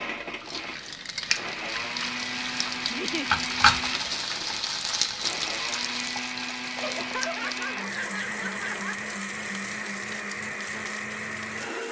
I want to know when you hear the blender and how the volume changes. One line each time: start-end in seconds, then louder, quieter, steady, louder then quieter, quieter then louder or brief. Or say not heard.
0.0-11.8 steady.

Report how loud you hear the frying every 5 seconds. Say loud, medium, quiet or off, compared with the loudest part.
loud, medium, quiet.